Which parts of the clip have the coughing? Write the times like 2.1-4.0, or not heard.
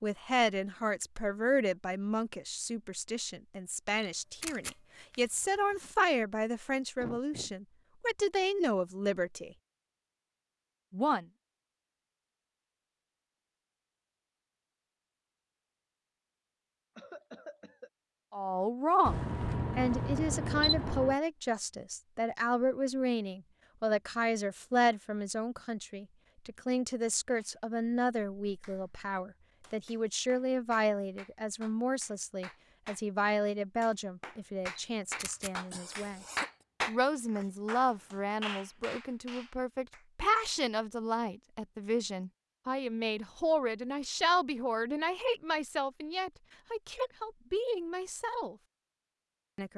7.0-7.5, 16.9-17.9, 35.7-36.5.